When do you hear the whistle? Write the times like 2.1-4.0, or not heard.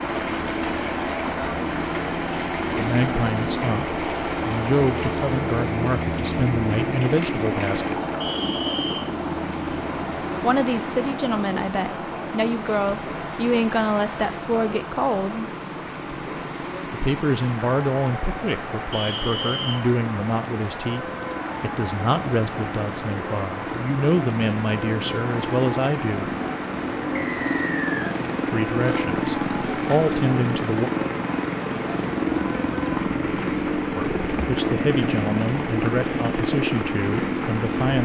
8.2-9.1, 18.9-19.8, 27.1-28.1.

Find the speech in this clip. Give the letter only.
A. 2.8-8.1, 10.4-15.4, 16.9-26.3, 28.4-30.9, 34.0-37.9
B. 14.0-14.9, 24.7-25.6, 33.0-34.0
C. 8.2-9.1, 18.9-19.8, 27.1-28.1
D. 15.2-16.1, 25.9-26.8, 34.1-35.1
A.